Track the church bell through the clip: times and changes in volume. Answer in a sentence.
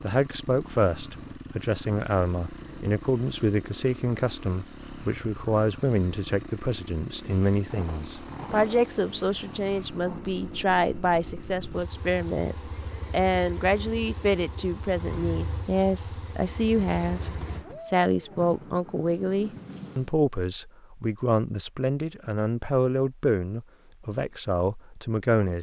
The church bell can't be heard in this clip.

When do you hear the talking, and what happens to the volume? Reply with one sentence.
The talking can be heard from 0.0 to 25.5 s, at a steady volume.